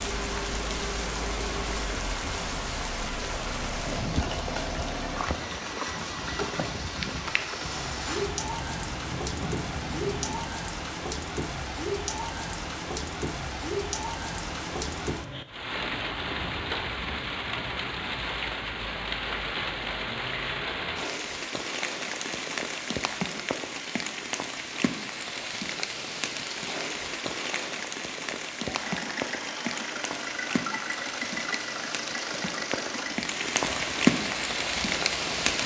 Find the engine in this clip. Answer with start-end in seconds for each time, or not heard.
0.0-10.6, 28.6-35.5.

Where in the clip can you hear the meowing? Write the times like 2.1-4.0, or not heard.
not heard.